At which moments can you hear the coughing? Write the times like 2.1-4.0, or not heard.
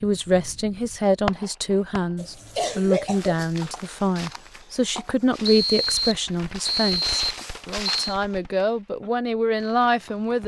2.1-3.4.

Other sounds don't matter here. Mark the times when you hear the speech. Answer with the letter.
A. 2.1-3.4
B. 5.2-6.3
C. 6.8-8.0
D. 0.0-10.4
D.